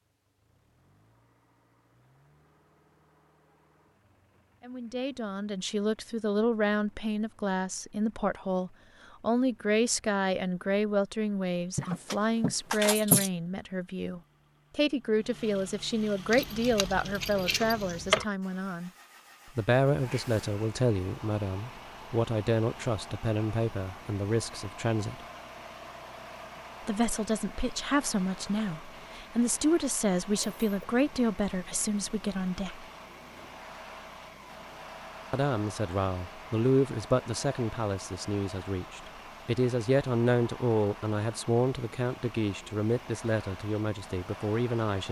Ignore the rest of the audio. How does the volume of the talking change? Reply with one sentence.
The loudness of the talking stays about the same.